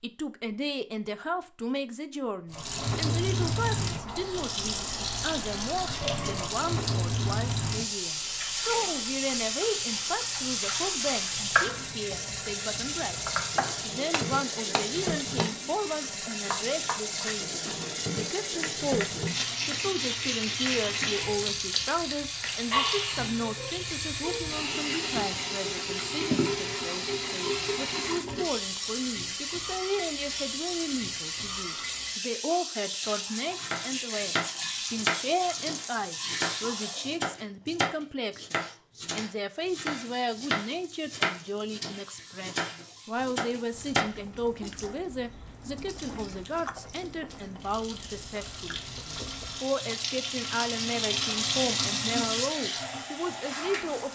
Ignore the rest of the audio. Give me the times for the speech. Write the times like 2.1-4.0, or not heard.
0.0-54.1.